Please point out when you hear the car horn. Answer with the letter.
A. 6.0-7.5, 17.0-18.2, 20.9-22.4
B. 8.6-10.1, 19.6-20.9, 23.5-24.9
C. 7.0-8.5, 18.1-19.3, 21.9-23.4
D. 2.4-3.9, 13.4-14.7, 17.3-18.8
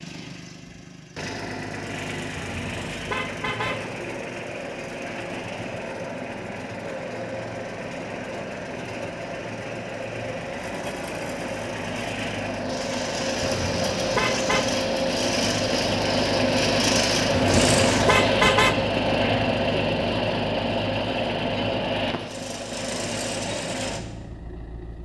D.